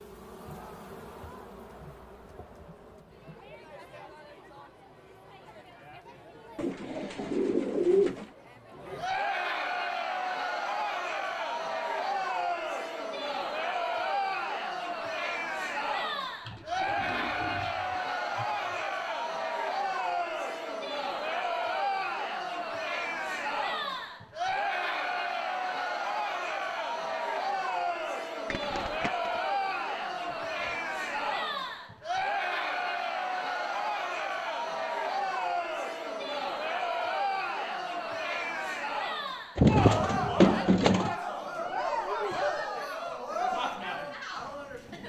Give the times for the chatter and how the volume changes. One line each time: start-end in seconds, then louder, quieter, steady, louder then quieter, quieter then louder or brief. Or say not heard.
0.1-45.0 louder.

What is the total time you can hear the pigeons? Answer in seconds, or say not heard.
7 s.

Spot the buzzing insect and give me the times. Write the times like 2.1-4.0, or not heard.
0.0-3.6.